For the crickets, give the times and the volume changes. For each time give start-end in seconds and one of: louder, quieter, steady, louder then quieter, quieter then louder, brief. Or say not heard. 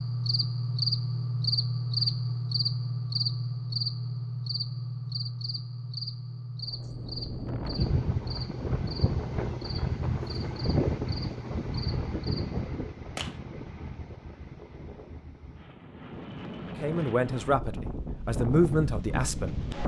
0.0-12.8 quieter.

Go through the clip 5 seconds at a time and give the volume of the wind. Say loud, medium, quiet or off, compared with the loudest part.
off, loud, loud, loud.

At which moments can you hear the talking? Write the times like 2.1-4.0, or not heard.
16.8-19.6.